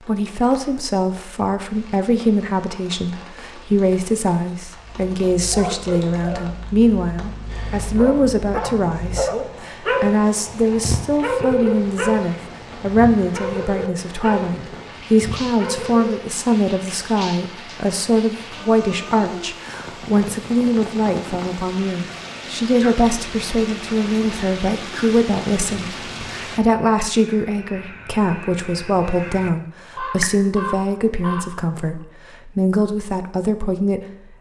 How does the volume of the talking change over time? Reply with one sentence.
The loudness of the talking stays about the same.